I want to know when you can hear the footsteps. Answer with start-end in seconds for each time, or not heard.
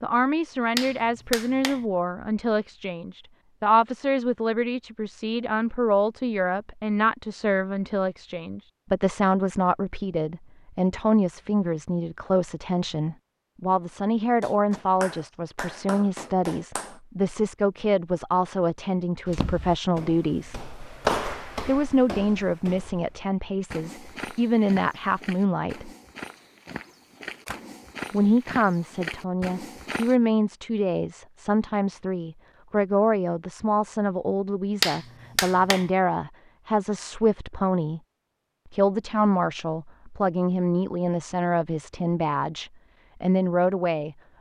19.2-30.1.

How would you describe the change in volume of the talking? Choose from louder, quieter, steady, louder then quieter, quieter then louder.
steady.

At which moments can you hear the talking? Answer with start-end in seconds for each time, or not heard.
0.0-20.6, 21.6-25.9, 28.1-38.0, 38.7-44.1.